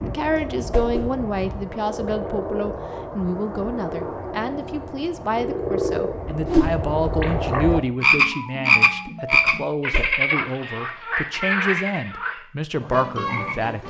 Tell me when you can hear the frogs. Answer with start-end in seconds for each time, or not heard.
0.0-13.8.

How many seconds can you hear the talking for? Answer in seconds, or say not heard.
14 s.